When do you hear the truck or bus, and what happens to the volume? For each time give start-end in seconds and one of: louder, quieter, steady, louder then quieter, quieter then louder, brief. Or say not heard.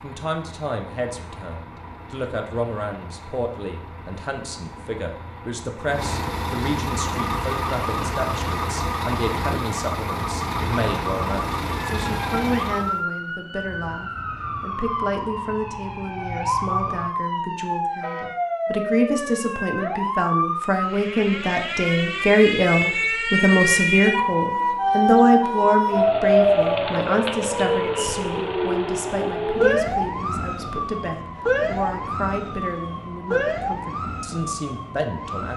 0.0-13.1 louder.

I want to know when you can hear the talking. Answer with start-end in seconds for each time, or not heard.
0.0-35.5.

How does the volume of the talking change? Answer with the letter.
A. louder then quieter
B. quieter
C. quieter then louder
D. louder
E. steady
A.